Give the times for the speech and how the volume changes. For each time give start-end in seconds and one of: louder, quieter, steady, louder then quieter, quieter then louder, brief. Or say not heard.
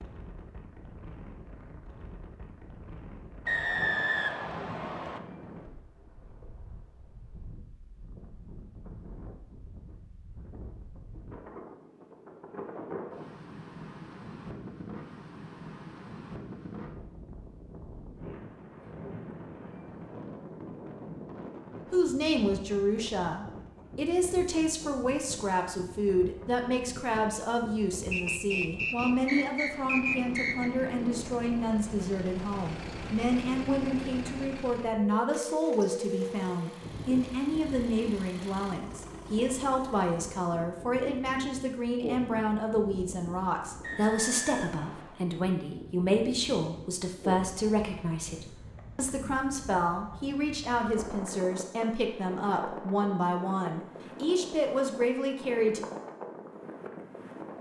21.9-55.9 steady.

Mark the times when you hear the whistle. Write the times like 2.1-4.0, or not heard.
3.5-5.2, 28.1-30.7, 43.8-45.2.